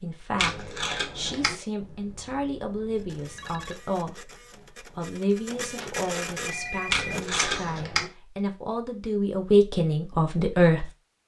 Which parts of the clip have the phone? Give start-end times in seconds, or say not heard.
1.8-3.8, 5.8-7.2.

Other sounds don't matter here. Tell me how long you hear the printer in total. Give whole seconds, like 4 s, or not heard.
5 s.